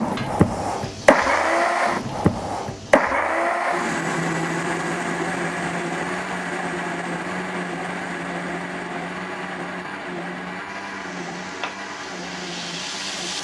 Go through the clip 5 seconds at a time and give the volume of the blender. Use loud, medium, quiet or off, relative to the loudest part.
loud, medium, medium.